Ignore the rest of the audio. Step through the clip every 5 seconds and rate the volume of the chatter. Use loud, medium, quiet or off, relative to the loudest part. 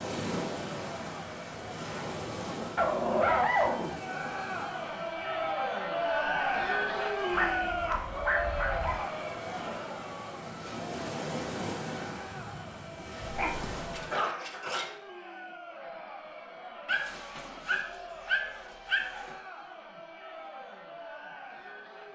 medium, loud, quiet, quiet, quiet.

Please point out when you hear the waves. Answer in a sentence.
You can hear the waves from 0.0 to 14.2 s.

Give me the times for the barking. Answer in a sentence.
You can hear the barking from 2.8 to 4.0 s, from 7.3 to 9.0 s, from 13.3 to 14.9 s and from 16.9 to 19.4 s.